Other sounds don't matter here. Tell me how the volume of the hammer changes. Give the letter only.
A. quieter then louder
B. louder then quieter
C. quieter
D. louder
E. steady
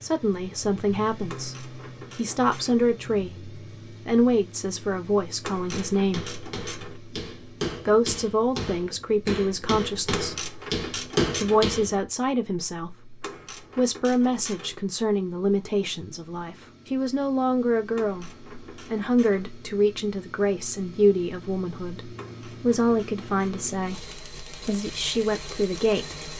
D.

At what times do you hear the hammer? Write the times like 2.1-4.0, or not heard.
5.5-12.1.